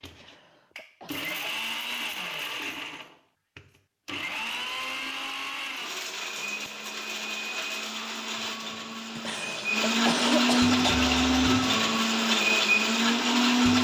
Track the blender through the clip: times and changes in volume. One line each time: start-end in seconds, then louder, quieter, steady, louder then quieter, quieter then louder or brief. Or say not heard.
0.0-13.8 louder.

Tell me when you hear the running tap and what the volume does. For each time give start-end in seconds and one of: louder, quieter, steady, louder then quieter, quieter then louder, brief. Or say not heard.
not heard.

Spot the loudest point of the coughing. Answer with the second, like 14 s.
10 s.